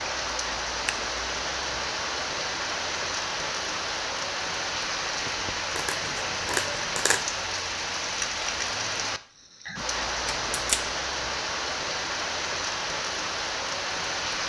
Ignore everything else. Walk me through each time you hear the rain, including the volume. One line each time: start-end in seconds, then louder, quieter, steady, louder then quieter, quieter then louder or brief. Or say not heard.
0.0-14.4 steady.